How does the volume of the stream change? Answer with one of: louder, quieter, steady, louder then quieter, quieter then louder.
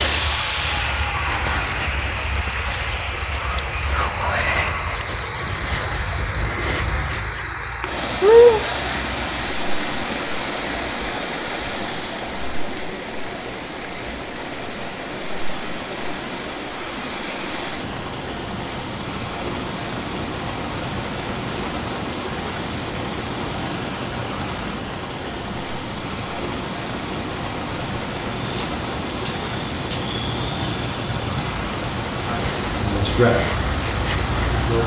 steady.